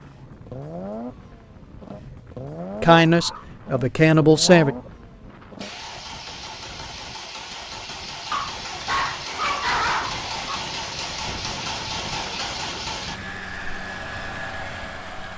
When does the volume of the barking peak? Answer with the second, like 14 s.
10 s.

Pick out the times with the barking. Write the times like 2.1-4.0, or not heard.
3.0-3.6, 4.5-4.9, 8.3-10.7.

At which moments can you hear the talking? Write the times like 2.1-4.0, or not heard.
2.8-4.8.